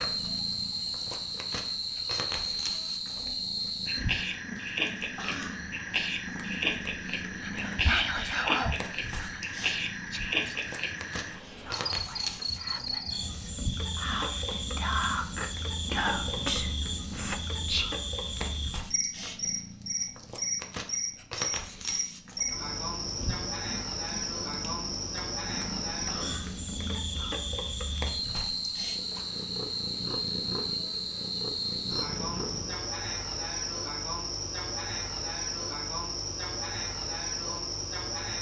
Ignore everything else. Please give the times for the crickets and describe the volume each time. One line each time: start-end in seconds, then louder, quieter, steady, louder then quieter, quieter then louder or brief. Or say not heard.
0.0-38.3 steady.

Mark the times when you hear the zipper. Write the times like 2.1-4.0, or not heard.
not heard.